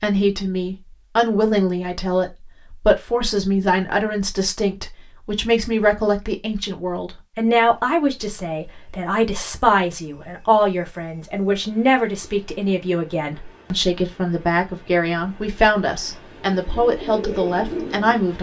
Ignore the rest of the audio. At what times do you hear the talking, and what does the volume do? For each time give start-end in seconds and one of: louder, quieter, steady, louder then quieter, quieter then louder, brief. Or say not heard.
0.0-18.3 steady.